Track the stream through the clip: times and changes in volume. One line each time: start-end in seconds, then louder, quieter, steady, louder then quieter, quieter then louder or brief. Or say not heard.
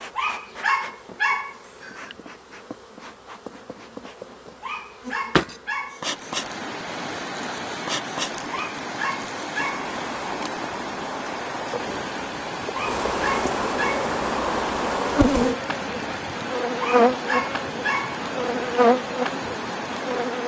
6.0-20.4 steady.